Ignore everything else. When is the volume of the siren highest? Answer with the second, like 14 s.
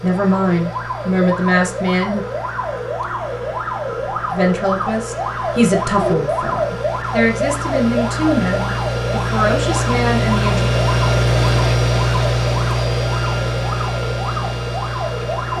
6 s.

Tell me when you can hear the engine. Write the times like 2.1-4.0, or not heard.
0.0-15.5.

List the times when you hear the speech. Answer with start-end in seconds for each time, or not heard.
0.0-2.2, 4.3-10.7.